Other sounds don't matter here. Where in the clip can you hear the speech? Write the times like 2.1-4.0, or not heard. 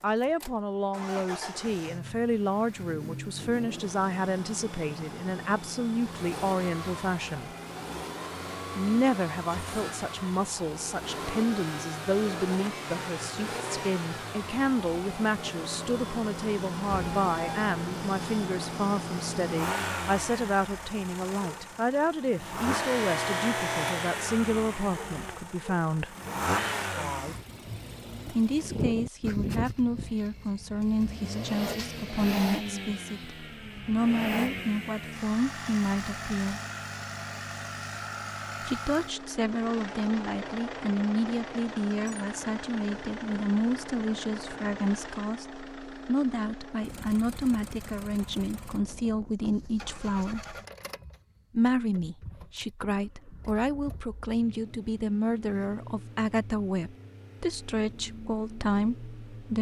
0.0-7.5, 8.8-26.1, 28.2-36.6, 38.6-50.4, 51.5-59.5.